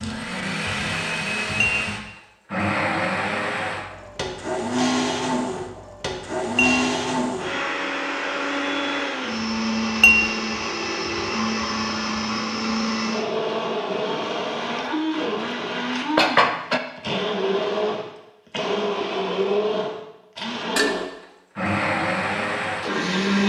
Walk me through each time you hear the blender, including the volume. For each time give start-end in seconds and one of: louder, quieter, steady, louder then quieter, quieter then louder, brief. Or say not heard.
0.0-23.4 steady.